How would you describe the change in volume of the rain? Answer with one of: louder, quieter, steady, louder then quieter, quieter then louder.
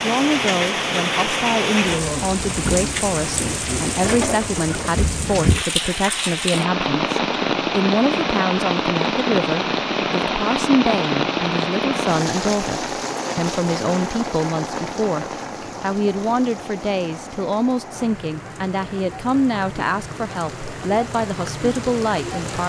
quieter.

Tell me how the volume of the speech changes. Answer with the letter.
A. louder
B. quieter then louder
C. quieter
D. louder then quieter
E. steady
E.